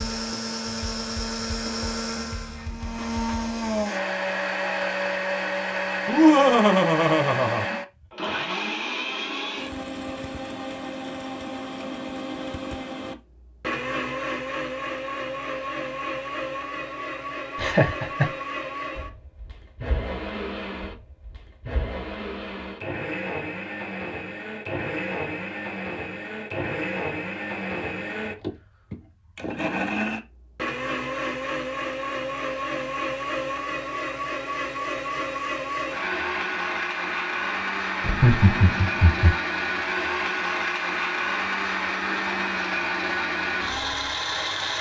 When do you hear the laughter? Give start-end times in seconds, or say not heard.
6.0-7.7, 17.6-18.3, 38.0-39.4.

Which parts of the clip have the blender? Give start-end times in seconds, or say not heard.
0.0-44.7.